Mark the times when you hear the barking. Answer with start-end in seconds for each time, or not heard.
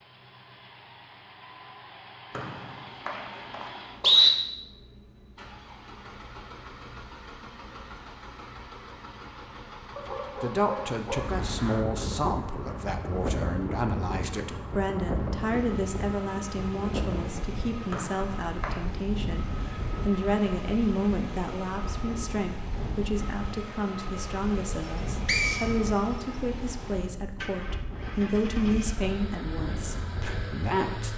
9.9-11.4.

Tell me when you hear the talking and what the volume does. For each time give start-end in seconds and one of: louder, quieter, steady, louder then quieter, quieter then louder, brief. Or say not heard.
10.4-31.1 steady.